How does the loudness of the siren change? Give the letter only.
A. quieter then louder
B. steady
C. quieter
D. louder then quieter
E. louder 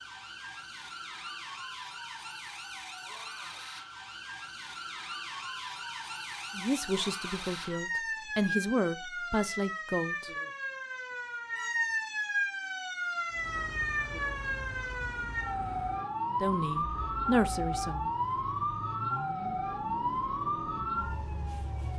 E.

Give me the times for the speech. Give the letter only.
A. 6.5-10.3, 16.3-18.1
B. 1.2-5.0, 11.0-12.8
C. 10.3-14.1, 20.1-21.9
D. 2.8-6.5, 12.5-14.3
A.